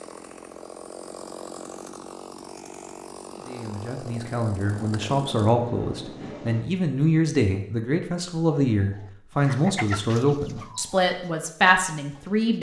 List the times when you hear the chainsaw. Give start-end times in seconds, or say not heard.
0.0-5.5.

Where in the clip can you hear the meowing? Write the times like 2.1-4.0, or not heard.
not heard.